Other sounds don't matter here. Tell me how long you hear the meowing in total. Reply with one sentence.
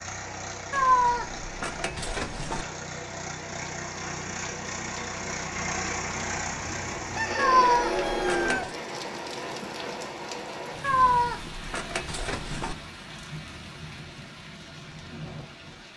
You can hear the meowing for 5 seconds altogether.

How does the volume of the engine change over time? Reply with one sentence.
The loudness of the engine goes up.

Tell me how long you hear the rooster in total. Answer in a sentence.
You can hear the rooster for 2 seconds altogether.